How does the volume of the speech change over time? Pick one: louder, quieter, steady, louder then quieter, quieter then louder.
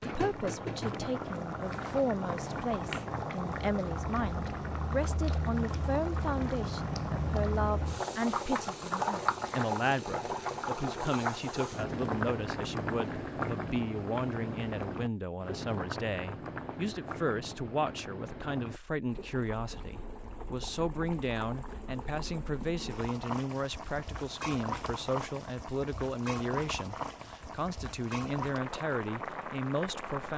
steady.